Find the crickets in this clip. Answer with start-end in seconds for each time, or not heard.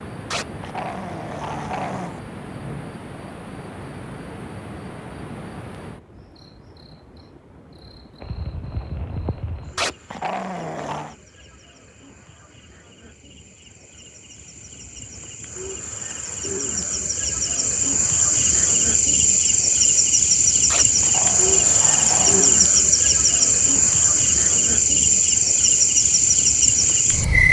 0.0-27.4.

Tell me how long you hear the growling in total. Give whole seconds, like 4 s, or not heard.
5 s.